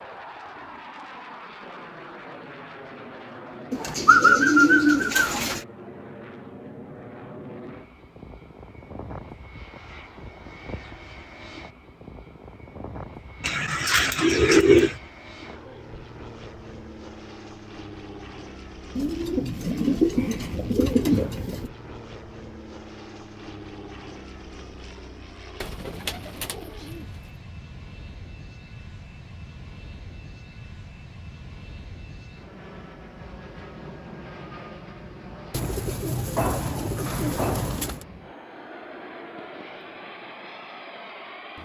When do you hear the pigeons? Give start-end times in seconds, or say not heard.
3.7-5.6, 13.4-14.9, 18.9-21.7, 25.6-27.3, 35.5-38.0.